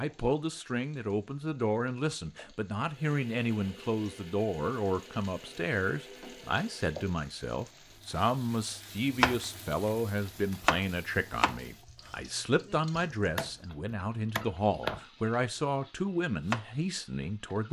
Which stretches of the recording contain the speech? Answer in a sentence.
You can hear the speech from 0.0 to 17.6 s.